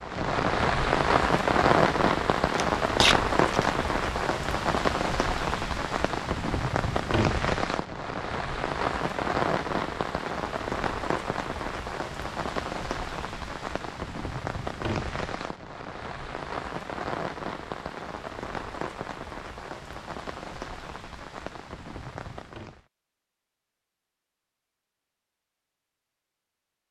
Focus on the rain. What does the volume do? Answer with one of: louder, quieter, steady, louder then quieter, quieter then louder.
quieter.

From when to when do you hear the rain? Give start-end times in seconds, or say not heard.
0.0-22.9.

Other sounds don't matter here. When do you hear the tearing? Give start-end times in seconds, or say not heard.
2.5-3.7.